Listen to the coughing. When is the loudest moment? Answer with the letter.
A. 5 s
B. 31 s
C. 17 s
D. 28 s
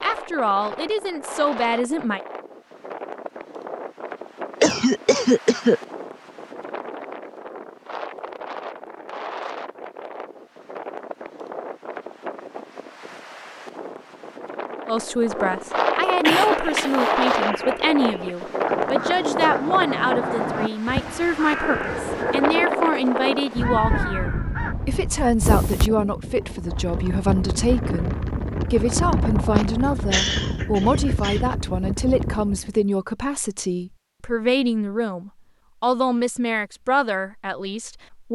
A.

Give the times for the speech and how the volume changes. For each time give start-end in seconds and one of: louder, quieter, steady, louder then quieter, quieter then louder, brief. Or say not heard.
0.0-2.2 brief
14.8-38.3 steady.